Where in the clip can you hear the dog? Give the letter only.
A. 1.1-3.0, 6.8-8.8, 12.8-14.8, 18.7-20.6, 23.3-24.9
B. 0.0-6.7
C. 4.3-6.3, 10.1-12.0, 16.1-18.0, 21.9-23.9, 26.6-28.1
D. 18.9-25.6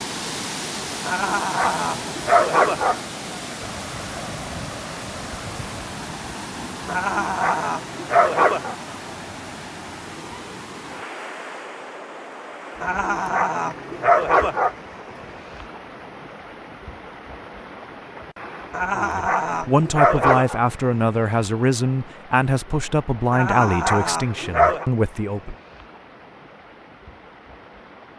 A.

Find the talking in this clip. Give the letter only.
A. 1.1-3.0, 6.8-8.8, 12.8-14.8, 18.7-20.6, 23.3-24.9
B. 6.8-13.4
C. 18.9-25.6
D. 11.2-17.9
C.